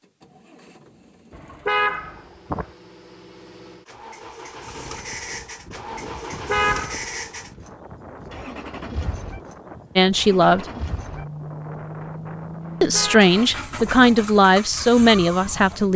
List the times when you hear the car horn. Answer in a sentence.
You can hear the car horn from 1.3 to 2.6 s, from 6.2 to 7.0 s and from 12.6 to 13.9 s.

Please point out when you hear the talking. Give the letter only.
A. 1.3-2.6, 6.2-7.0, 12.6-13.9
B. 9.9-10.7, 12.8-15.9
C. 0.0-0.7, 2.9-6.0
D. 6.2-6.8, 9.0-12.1
B.